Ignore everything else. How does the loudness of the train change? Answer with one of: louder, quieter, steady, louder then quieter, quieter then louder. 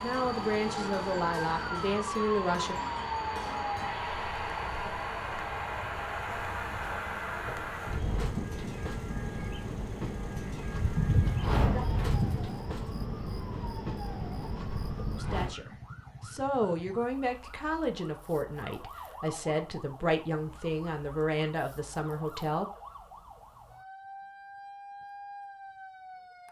steady.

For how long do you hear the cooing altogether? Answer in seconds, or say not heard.
2 s.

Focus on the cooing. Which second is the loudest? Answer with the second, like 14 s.
11 s.